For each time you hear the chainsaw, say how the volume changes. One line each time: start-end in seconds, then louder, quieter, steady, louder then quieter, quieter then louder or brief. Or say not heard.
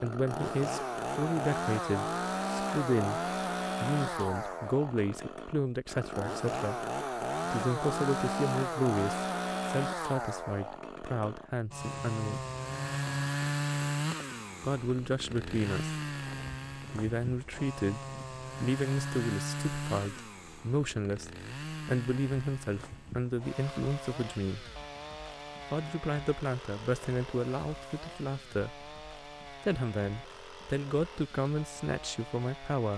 0.0-32.9 quieter.